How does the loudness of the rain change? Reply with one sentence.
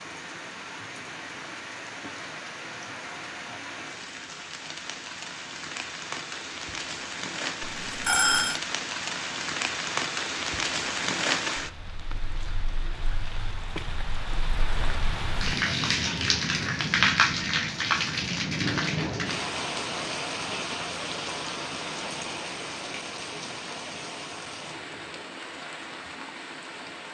The volume of the rain goes up, then down.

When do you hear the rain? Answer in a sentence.
The rain can be heard from 0.0 to 27.0 s.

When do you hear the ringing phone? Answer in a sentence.
The ringing phone can be heard from 7.6 to 8.6 s.